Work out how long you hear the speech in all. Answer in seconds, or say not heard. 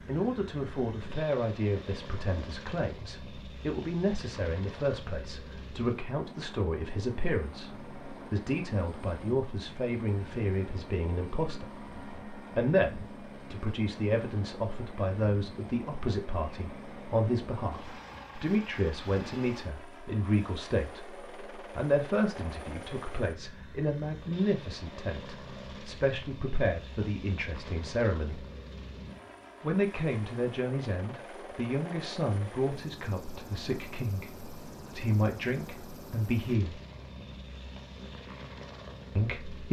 36 s.